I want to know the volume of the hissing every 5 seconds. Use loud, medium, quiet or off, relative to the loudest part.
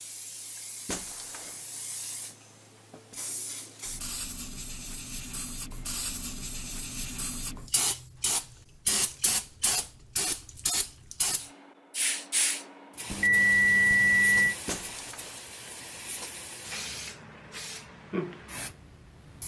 medium, loud, loud, medium.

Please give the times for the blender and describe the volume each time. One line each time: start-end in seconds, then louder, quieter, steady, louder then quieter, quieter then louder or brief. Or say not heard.
not heard.